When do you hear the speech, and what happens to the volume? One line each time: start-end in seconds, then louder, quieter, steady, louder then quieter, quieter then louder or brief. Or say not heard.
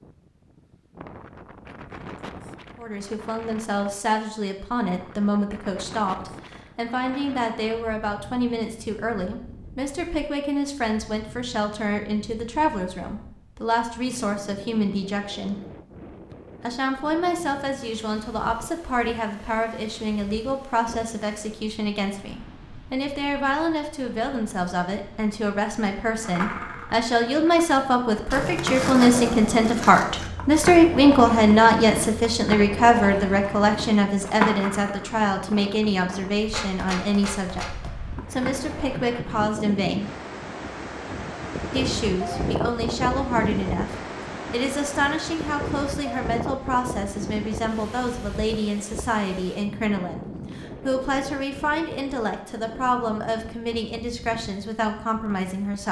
2.8-15.6 steady
16.6-40.1 louder then quieter
41.7-55.8 steady.